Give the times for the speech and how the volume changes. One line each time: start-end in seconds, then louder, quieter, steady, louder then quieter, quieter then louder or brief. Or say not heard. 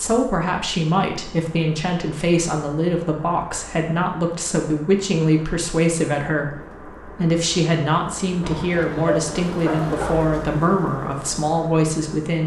0.0-12.4 steady.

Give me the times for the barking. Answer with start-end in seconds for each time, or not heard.
8.4-10.2.